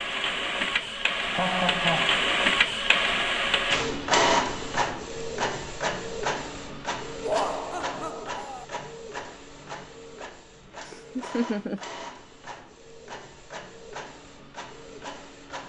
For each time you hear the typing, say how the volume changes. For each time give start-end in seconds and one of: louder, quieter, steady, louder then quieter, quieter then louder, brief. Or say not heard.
not heard.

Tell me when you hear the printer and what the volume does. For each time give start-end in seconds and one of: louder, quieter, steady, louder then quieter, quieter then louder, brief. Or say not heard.
0.0-15.6 quieter.